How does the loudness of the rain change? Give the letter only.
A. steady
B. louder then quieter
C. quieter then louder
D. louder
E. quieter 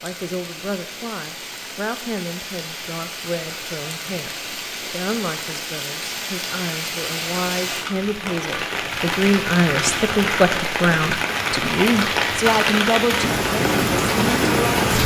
D.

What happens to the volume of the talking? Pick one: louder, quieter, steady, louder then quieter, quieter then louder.
louder.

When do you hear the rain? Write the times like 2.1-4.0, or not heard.
0.0-15.0.